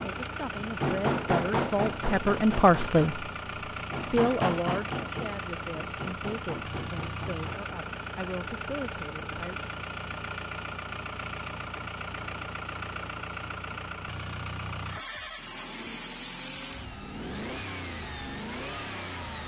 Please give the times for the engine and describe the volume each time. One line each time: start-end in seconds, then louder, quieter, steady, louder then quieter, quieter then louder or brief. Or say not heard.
0.0-19.4 steady.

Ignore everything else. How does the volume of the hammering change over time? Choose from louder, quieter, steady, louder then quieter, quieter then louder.
quieter.